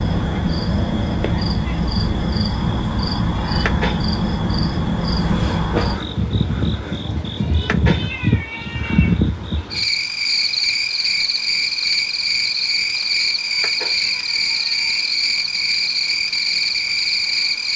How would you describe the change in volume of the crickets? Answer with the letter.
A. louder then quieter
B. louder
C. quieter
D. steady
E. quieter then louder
D.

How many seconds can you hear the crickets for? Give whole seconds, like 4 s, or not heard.
18 s.